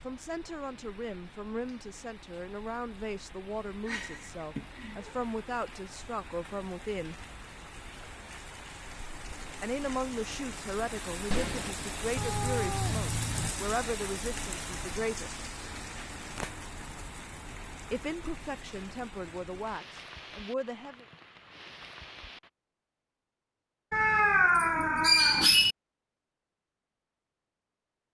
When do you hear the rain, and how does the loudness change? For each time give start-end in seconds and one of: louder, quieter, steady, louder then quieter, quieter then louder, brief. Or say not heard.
0.0-22.5 louder then quieter.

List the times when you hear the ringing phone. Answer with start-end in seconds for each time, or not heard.
11.3-11.8.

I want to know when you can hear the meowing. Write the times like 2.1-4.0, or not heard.
3.9-5.2, 12.2-13.5, 23.9-25.8.